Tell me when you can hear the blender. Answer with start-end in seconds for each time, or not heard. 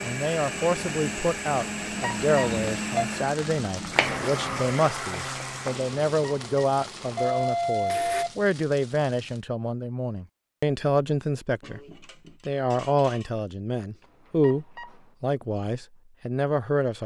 0.0-8.2.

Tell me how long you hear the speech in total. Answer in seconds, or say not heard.
16 s.